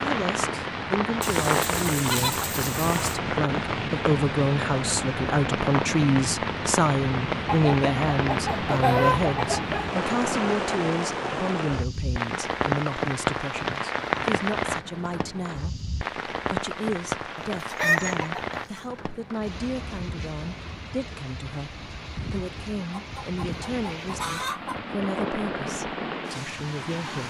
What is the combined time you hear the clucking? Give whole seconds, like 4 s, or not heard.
8 s.